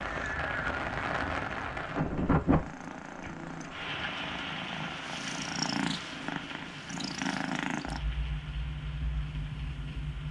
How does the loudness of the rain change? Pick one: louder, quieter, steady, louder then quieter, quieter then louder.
quieter.